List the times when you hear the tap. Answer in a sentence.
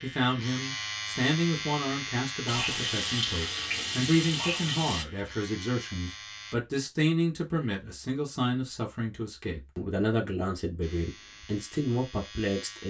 You can hear the tap from 2.5 to 5.0 s.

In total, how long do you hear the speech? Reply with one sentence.
The speech can be heard for 13 seconds in total.